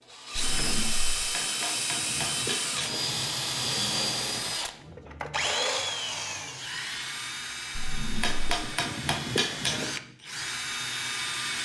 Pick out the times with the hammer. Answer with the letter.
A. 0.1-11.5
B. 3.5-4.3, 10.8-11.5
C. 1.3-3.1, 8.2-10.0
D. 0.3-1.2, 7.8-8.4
C.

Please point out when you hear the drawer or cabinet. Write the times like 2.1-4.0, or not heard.
0.3-1.2, 7.8-8.4.